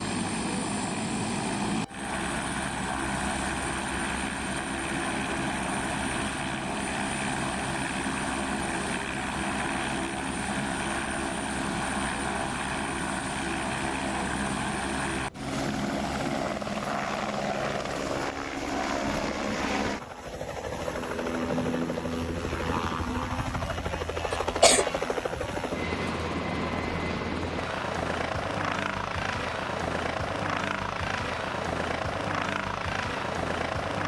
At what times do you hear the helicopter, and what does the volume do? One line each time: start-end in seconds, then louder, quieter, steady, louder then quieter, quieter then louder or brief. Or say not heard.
0.0-34.0 steady.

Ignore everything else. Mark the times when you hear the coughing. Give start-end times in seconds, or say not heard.
24.3-24.9.